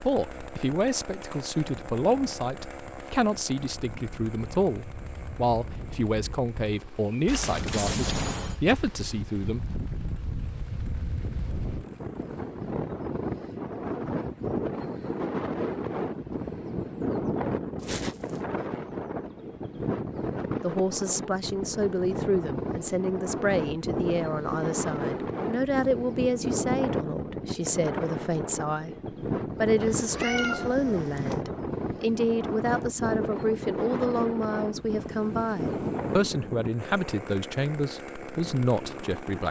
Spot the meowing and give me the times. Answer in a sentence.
You can hear the meowing from 7.2 to 8.6 s, from 17.8 to 18.4 s and from 29.8 to 31.4 s.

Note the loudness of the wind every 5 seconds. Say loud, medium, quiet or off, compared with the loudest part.
quiet, medium, loud, loud, loud, loud, loud, loud.